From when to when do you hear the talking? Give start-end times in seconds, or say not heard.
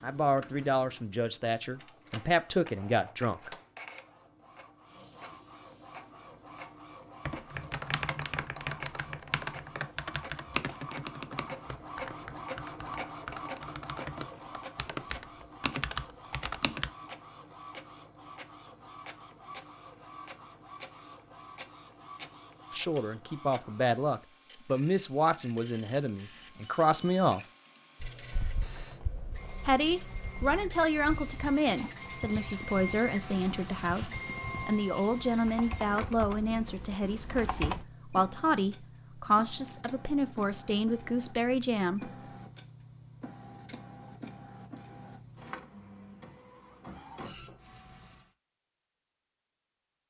0.0-3.5, 22.7-27.4, 29.6-42.1.